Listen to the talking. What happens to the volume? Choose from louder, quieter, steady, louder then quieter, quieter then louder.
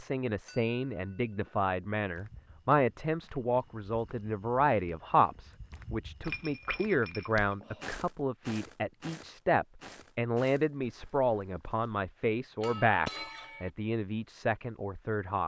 steady.